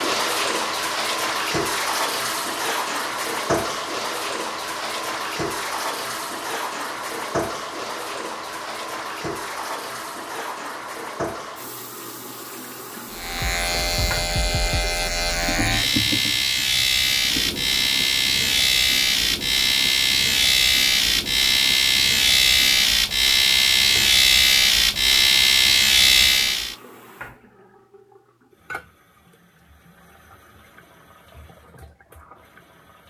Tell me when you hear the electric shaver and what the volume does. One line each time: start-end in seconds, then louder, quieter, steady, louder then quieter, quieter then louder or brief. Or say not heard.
13.1-26.8 louder.